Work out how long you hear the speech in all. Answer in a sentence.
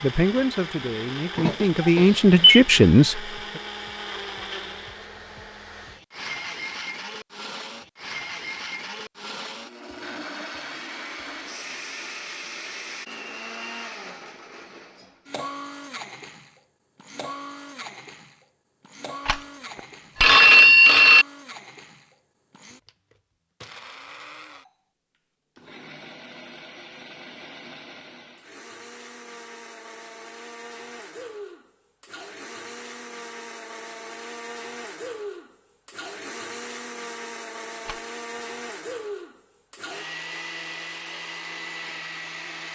The speech can be heard for 3 seconds in total.